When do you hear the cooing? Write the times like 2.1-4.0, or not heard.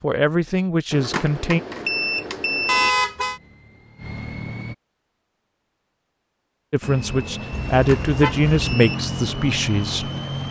not heard.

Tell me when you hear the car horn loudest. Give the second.
3 s.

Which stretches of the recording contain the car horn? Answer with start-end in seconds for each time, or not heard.
2.6-3.4, 7.5-8.5.